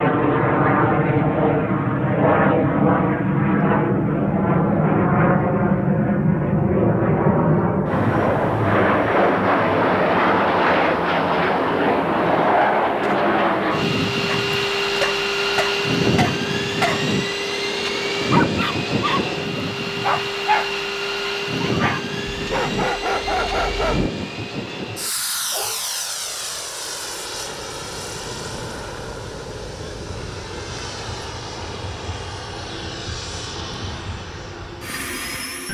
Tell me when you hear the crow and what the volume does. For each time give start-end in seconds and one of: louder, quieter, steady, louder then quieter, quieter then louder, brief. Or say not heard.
not heard.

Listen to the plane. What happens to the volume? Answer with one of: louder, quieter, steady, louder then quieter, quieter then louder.
quieter.